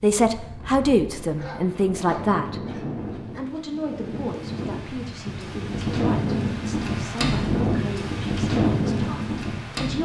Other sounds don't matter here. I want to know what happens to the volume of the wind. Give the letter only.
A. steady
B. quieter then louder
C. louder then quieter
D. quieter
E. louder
E.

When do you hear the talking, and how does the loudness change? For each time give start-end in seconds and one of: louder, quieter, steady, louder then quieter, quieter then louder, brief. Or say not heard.
0.0-10.0 quieter.